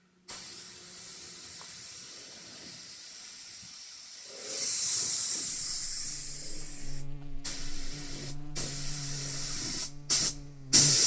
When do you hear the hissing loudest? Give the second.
11 s.